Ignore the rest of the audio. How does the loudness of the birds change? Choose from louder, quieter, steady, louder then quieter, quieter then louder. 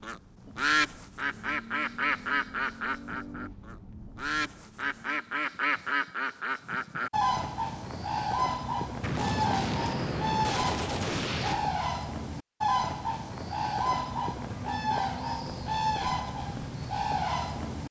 steady.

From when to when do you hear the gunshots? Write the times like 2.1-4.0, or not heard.
9.0-11.7.